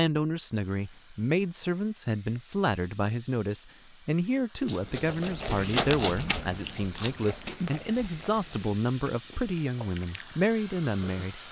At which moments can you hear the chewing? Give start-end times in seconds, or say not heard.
4.7-11.2.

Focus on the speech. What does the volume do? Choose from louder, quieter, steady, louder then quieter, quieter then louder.
steady.